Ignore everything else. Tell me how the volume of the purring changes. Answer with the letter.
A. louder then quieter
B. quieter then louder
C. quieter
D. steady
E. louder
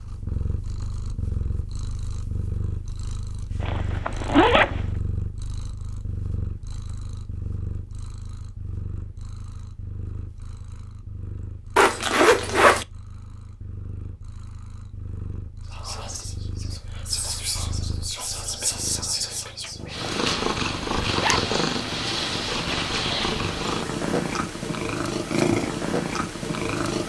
B.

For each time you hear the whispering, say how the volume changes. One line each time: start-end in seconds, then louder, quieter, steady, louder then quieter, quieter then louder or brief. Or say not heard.
15.7-20.1 louder.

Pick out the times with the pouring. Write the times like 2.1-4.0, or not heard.
not heard.